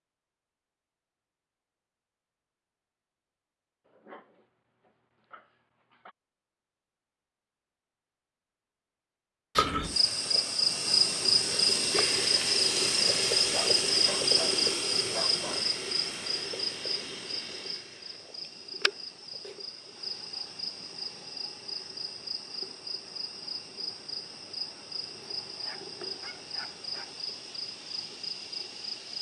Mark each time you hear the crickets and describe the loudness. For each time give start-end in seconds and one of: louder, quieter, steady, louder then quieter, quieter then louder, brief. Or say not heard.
9.6-29.1 quieter.